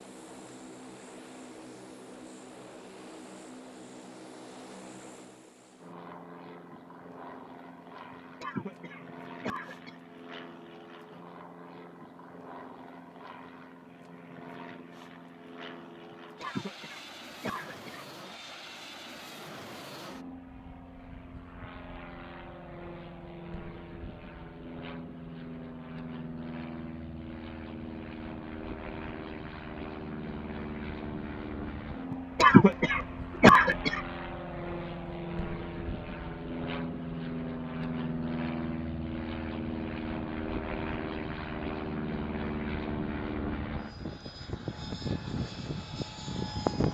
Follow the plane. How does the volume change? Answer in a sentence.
The volume of the plane goes up.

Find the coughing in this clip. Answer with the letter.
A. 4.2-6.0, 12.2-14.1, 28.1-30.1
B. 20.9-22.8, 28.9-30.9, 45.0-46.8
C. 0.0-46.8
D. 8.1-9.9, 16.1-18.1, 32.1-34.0
D.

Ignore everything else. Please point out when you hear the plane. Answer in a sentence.
You can hear the plane from 0.0 to 46.8 s.